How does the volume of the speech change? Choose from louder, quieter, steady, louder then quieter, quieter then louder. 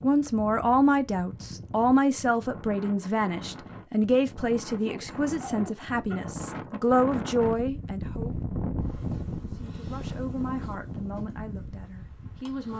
quieter.